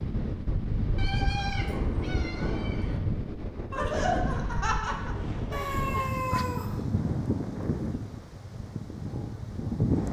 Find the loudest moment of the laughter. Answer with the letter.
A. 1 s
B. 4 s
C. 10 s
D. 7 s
B.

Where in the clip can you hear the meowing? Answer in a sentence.
The meowing can be heard from 0.9 to 3.0 s and from 5.5 to 7.0 s.